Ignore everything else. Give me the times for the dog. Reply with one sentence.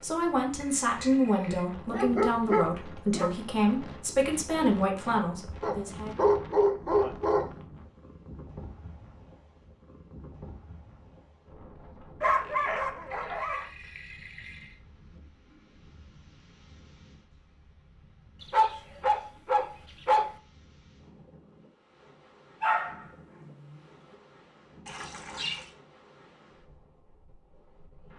You can hear the dog from 1.9 to 3.3 s, from 5.6 to 7.5 s, from 12.2 to 13.7 s, from 18.4 to 20.4 s and from 22.6 to 23.5 s.